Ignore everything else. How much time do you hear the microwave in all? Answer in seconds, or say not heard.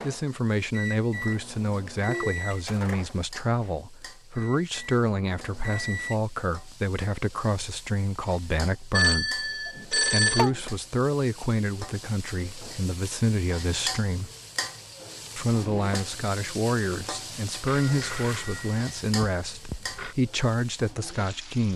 6 s.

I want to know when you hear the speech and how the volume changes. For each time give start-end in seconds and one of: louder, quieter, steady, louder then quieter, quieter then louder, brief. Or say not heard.
0.0-14.3 steady
15.3-21.7 steady.